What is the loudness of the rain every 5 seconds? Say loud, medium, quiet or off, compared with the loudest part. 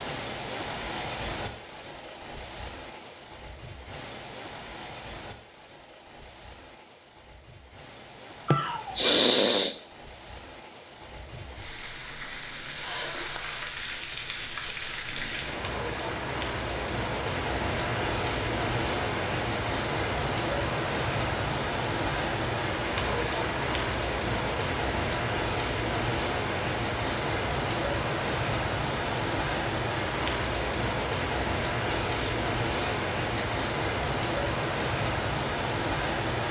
medium, quiet, medium, loud, loud, loud, loud, loud.